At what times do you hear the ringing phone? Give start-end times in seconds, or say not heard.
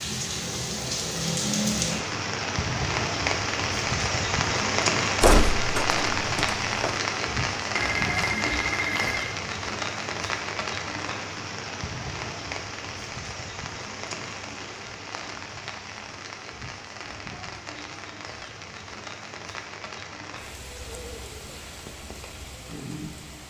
7.8-9.3.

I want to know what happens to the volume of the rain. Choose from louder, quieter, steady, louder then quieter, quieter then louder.
quieter.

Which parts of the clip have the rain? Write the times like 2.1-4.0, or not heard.
0.0-23.4.